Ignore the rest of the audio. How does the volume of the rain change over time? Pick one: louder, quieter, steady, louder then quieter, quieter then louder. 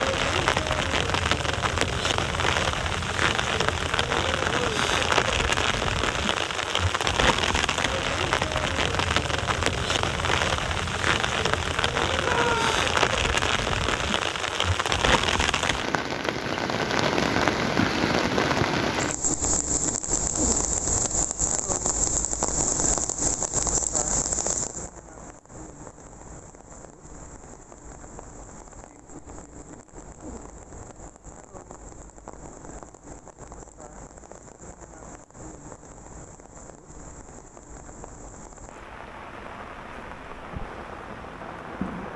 quieter.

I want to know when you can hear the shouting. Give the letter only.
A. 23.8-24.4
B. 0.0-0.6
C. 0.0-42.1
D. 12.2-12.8
D.